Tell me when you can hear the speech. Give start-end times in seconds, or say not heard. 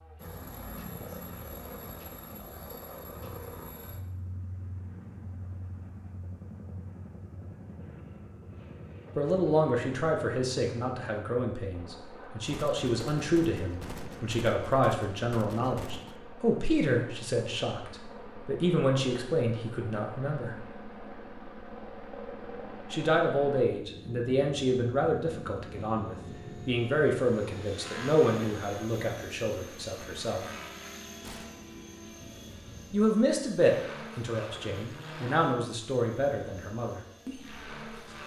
9.2-20.6, 22.9-30.4, 32.9-37.5.